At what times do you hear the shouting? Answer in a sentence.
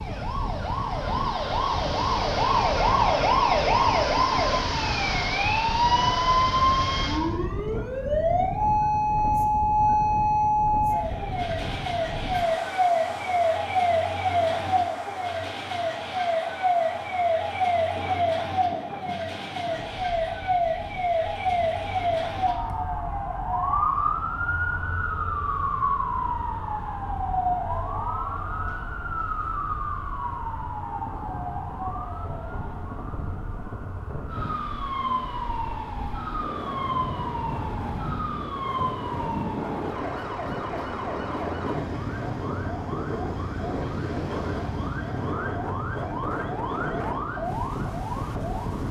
You can't hear the shouting here.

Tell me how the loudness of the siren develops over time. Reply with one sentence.
The loudness of the siren goes down.